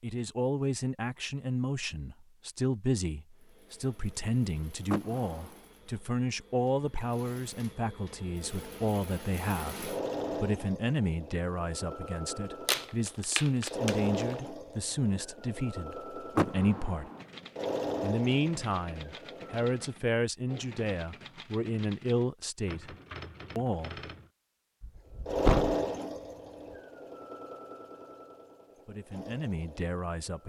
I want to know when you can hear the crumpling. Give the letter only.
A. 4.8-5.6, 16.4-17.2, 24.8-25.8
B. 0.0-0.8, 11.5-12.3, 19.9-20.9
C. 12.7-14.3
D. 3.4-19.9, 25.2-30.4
C.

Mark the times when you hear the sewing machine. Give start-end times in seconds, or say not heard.
3.4-19.9, 25.2-30.4.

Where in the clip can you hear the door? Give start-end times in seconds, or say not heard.
4.8-5.6, 16.4-17.2, 24.8-25.8.